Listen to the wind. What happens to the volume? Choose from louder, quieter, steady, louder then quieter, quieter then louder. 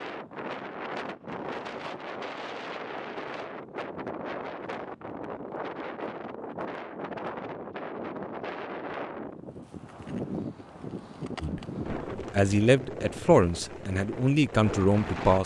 steady.